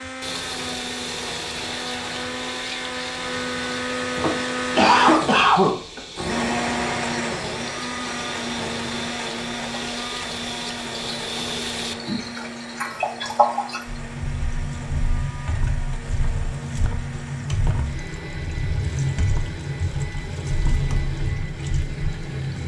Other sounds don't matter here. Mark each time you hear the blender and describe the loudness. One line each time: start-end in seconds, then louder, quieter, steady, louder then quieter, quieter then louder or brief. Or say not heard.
0.0-22.6 quieter.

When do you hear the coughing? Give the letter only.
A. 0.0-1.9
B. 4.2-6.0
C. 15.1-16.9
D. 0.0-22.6
B.